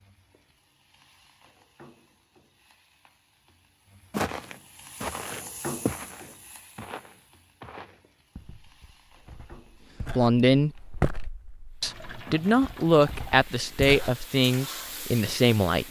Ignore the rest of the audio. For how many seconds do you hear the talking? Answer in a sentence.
The talking can be heard for 5 seconds in total.